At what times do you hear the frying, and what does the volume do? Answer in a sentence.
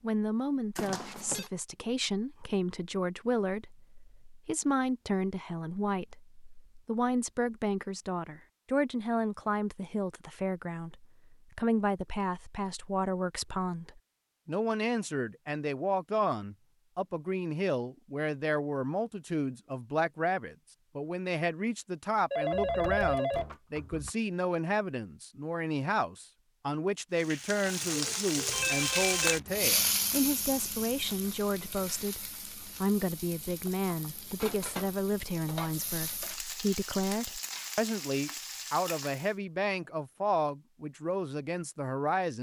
The frying can be heard from 27.1 to 39.4 s, getting quieter then louder.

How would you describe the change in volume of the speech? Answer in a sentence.
The volume of the speech stays about the same.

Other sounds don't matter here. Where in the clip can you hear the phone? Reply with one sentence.
You can hear the phone from 0.8 to 1.5 s, from 22.3 to 24.1 s and from 28.5 to 29.4 s.